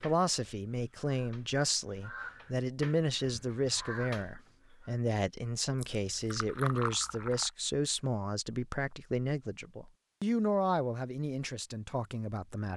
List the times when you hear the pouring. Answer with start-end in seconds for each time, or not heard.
5.8-7.5.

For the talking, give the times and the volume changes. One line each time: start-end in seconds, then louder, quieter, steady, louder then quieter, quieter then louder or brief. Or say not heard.
0.0-12.7 steady.